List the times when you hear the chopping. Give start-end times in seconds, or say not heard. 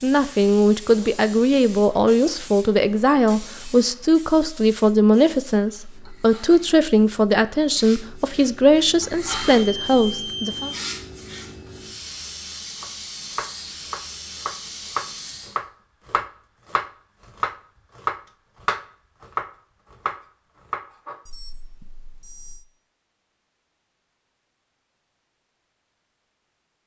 12.8-21.2.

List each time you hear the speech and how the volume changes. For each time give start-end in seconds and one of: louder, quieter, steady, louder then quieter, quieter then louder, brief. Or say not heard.
0.0-10.7 steady.